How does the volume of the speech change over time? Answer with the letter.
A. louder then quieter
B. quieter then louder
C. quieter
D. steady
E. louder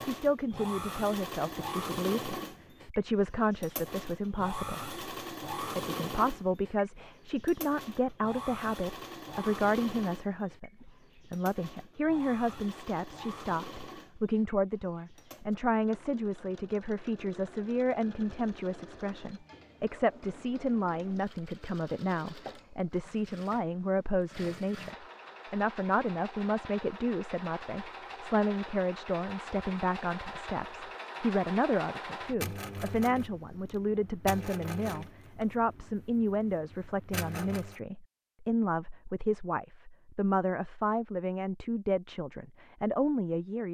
D.